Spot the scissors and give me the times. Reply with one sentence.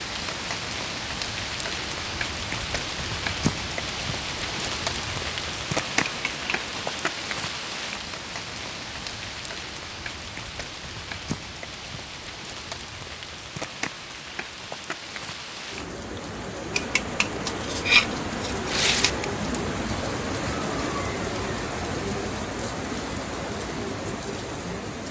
You can hear the scissors from 6.0 to 7.0 s and from 16.7 to 19.2 s.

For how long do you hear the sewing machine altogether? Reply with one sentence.
You can't hear the sewing machine here.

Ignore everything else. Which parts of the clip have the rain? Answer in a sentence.
The rain can be heard from 0.0 to 25.0 s.